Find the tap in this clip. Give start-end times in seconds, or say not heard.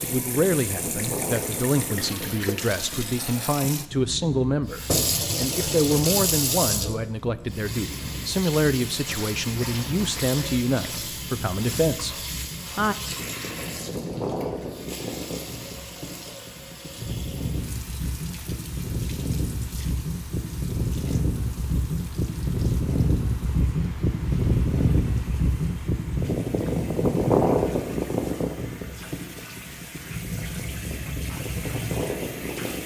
0.0-32.8.